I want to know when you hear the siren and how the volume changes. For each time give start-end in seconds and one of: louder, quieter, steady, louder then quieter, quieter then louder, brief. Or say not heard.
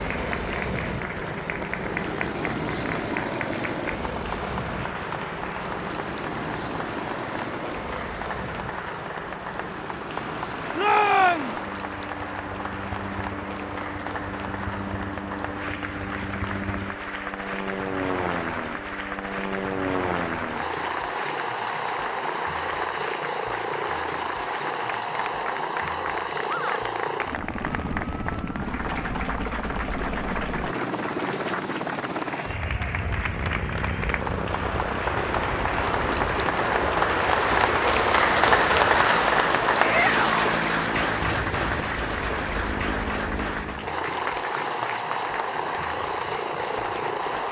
not heard.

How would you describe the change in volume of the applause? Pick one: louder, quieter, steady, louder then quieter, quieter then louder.
louder.